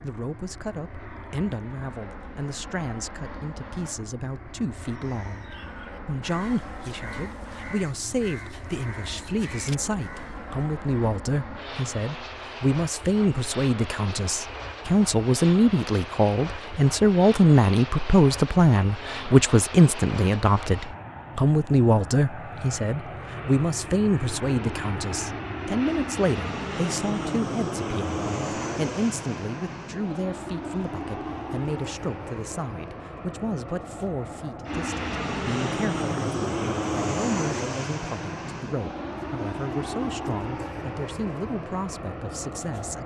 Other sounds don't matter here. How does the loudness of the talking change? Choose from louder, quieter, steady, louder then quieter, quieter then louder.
louder then quieter.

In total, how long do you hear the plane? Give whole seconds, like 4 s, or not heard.
43 s.